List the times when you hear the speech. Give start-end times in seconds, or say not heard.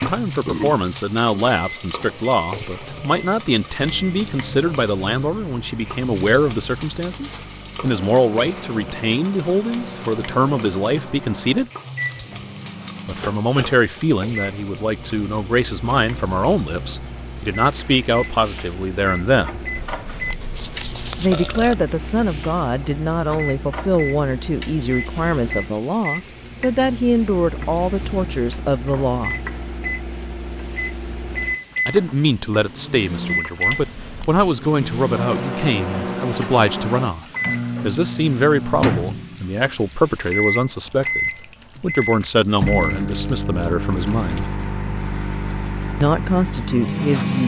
0.0-11.7, 13.1-19.6, 21.2-29.4, 31.9-44.5, 46.0-47.4.